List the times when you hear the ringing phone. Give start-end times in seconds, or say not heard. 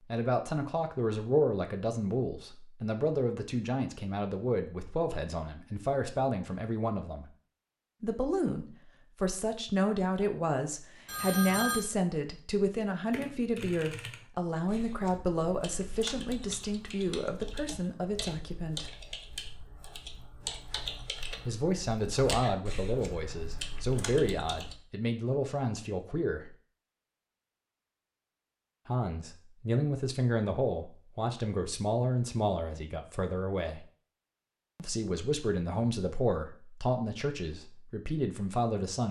11.1-11.9.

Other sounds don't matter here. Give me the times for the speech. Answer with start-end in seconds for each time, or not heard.
0.1-7.2, 8.0-18.9, 21.4-26.6, 28.9-33.9, 34.8-39.0.